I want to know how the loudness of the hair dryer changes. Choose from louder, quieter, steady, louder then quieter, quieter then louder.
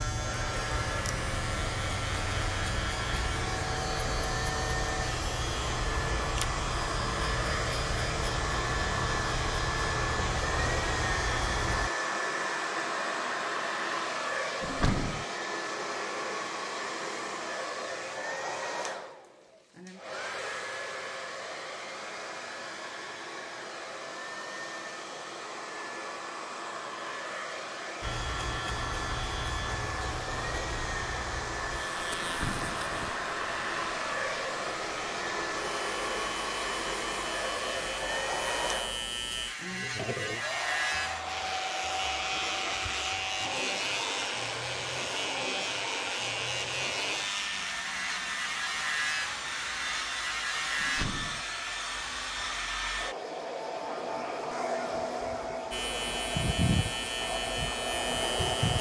steady.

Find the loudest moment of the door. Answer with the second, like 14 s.
15 s.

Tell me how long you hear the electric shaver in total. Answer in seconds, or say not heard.
38 s.